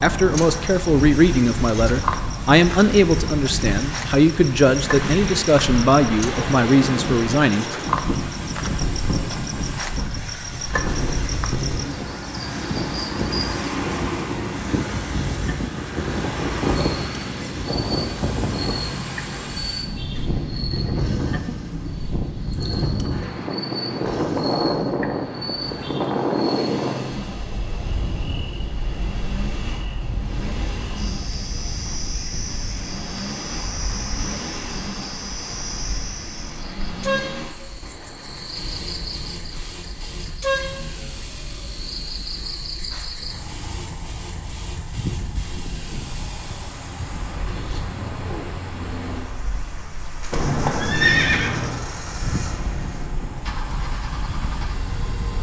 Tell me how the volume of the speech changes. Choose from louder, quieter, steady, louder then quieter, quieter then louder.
steady.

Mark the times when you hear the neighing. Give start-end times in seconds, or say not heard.
50.3-51.8.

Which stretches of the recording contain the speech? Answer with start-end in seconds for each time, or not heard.
0.0-8.2.